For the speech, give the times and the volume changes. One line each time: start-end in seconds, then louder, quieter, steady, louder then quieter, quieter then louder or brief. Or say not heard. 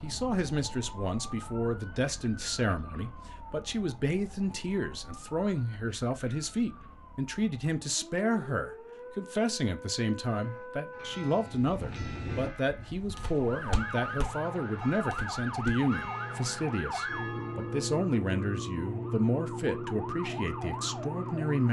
0.0-21.6 steady.